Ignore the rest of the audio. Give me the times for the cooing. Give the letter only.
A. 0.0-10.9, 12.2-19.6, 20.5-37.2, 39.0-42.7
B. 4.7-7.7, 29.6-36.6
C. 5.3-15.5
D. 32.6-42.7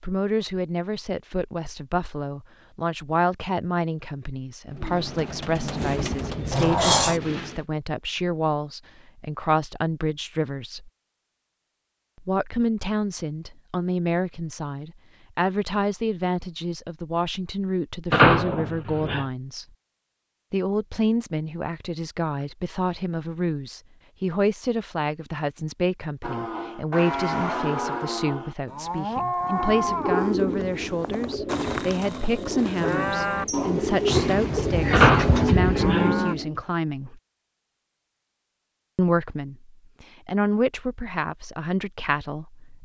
B.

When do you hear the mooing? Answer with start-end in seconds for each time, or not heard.
26.2-36.4.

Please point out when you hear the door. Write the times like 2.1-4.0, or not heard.
6.5-7.2, 18.1-19.2, 34.9-36.1.